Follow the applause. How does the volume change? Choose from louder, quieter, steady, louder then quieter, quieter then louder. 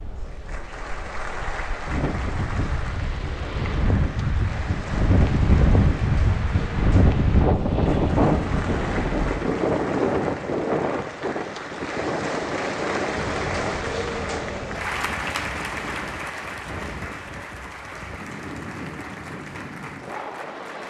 louder then quieter.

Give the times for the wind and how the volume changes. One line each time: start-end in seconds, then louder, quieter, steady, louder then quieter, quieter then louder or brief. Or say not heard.
0.0-20.8 louder then quieter.